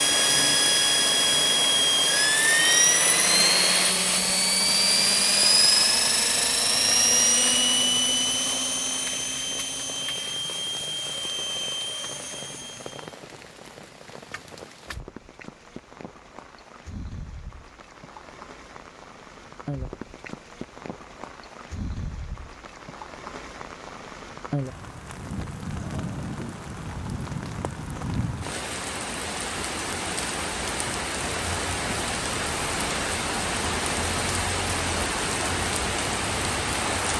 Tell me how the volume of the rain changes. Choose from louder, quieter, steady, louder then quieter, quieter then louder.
louder.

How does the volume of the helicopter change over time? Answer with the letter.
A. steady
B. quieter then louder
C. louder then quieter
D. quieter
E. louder
D.